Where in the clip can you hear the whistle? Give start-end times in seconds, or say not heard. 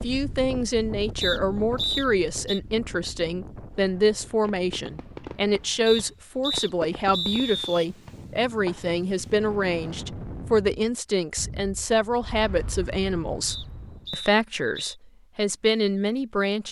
1.2-2.6, 5.8-7.8, 13.4-14.9.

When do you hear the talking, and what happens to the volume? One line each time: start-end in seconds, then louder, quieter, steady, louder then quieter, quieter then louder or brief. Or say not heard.
0.0-16.6 steady.